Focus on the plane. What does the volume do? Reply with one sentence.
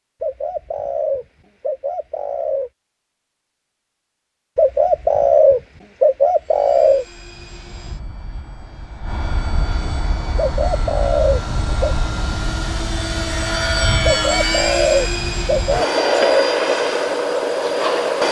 The loudness of the plane goes up.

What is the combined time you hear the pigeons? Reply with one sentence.
You can hear the pigeons for 9 seconds altogether.